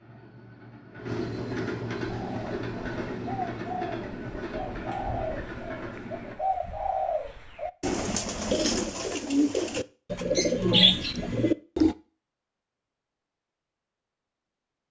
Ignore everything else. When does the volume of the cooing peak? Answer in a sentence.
The volume of the cooing peaks at 11 seconds.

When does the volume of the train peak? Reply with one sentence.
The loudest moment of the train is at 2 seconds.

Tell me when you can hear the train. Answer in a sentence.
The train can be heard from 0.0 to 6.3 s.